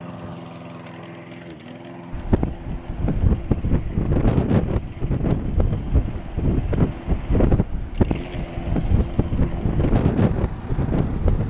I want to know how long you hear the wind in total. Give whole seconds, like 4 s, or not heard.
9 s.